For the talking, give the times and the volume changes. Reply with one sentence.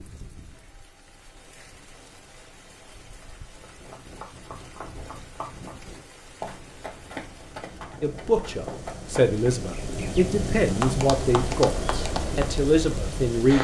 You can hear the talking from 8.0 to 13.5 s, at a steady volume.